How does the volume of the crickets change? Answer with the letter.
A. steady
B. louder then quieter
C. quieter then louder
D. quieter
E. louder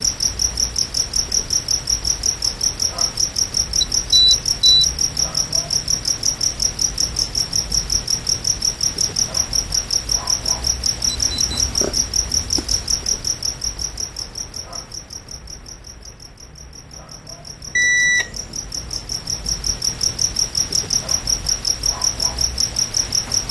C.